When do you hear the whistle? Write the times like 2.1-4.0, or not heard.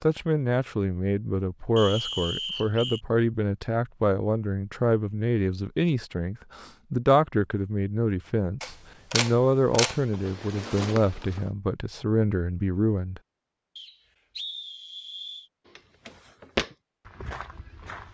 1.8-3.0, 13.8-15.5.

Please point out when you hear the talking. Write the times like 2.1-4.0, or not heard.
0.0-13.2.